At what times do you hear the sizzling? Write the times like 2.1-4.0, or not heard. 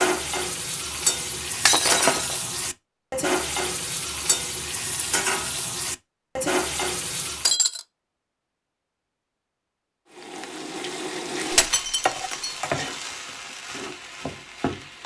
0.0-7.6, 10.1-15.0.